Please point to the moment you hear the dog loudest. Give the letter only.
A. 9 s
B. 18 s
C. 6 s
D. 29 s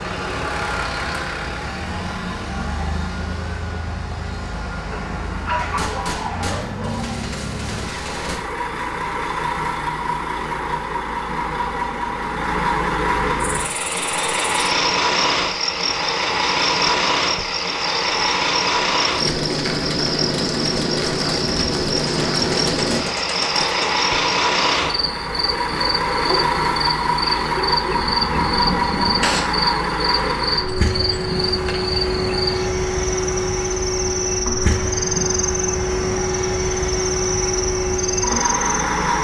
C.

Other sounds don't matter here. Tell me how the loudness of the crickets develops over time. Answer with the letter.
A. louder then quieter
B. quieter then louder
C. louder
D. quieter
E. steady
E.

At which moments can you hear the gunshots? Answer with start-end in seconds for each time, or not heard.
5.5-8.4, 21.9-23.9, 27.8-29.4.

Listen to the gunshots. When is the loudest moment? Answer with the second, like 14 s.
29 s.